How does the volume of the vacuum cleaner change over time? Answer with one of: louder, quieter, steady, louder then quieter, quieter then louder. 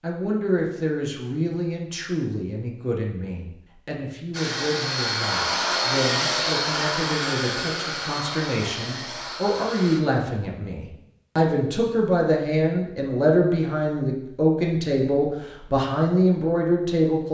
quieter.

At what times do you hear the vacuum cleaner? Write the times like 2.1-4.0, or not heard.
4.3-10.0.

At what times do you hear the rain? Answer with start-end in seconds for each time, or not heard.
not heard.